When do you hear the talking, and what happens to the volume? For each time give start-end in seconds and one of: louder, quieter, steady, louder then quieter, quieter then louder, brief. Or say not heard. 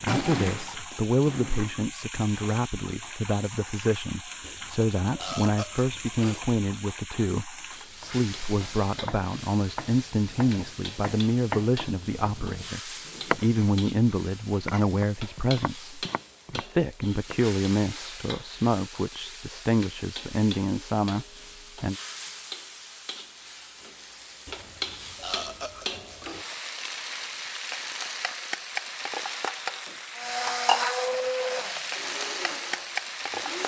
0.0-21.9 steady.